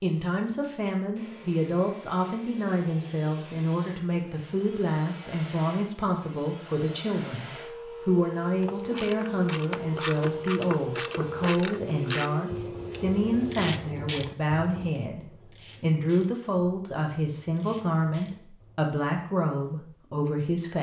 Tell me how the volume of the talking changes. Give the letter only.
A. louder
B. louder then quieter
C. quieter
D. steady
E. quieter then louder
D.